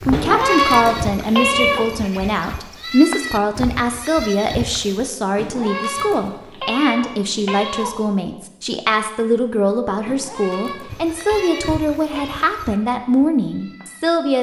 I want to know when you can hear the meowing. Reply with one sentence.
The meowing can be heard from 0.1 to 1.9 s, from 5.3 to 8.1 s and from 10.1 to 12.5 s.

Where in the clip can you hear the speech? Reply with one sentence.
The speech can be heard from 0.0 to 14.3 s.